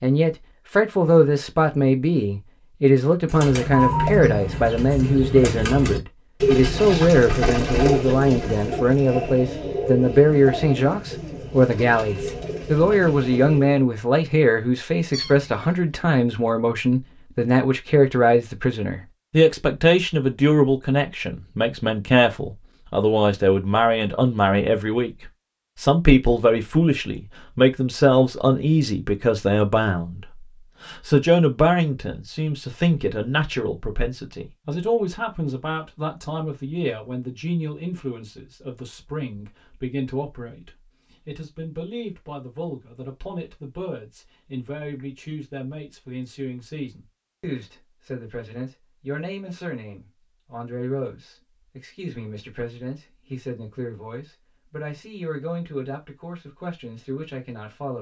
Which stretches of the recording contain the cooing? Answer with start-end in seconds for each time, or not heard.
3.2-13.8.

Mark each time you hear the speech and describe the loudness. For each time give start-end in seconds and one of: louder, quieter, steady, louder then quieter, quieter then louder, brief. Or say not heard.
0.0-25.1 steady
25.8-57.9 quieter.